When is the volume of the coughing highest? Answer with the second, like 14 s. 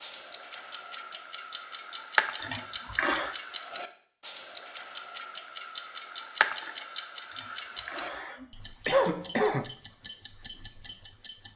9 s.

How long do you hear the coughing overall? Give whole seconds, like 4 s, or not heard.
3 s.